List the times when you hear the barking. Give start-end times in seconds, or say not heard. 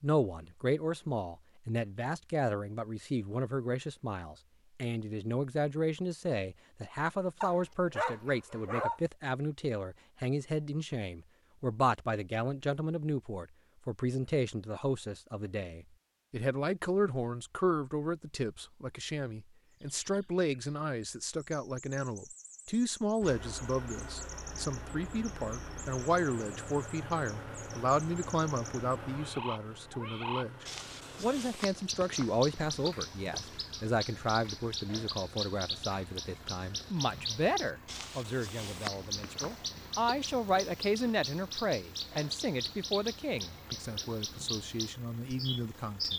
7.4-9.0.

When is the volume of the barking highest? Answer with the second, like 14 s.
9 s.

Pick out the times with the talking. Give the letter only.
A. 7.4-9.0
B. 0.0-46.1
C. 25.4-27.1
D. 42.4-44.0
B.